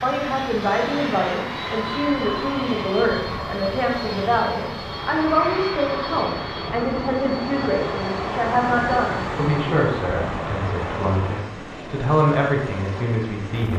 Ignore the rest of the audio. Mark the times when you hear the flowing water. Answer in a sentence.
The flowing water can be heard from 0.2 to 11.4 s.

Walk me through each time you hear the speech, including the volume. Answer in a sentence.
The speech can be heard from 0.0 to 13.7 s, at a steady volume.